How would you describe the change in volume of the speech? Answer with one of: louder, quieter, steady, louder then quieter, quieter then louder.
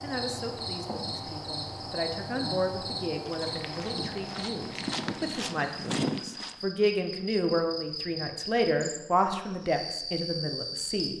louder.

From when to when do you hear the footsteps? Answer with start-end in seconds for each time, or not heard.
3.2-6.5.